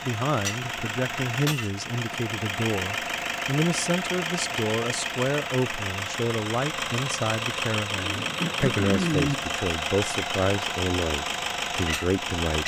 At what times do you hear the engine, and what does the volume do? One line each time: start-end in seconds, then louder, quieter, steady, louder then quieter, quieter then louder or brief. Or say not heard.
0.0-12.6 steady.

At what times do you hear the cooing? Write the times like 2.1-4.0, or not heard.
8.0-9.4.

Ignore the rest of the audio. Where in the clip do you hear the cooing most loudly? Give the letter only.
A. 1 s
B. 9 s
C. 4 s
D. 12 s
B.